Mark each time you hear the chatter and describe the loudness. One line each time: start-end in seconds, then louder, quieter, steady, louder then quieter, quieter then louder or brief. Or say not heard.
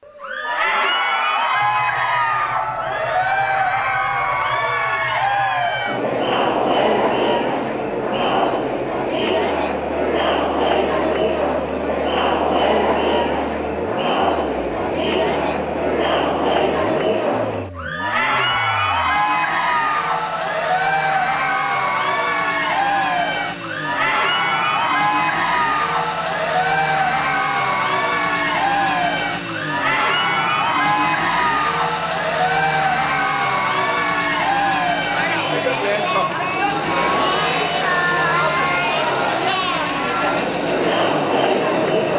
0.1-42.1 steady.